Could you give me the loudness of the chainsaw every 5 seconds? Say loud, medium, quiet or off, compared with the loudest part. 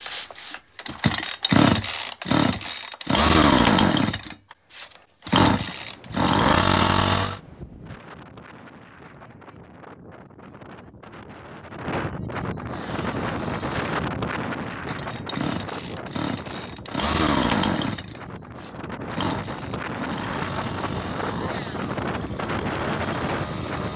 loud, loud, quiet, medium, quiet.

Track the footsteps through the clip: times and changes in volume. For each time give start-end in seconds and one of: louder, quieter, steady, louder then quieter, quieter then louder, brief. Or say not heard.
not heard.